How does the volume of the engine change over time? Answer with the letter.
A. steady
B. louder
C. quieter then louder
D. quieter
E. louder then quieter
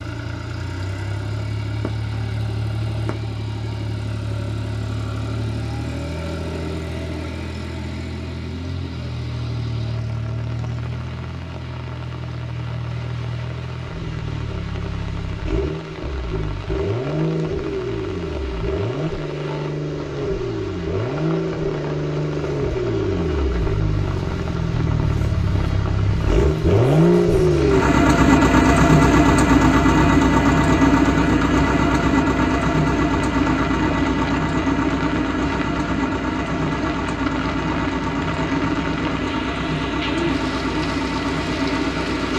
E.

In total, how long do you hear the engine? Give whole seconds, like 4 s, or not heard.
42 s.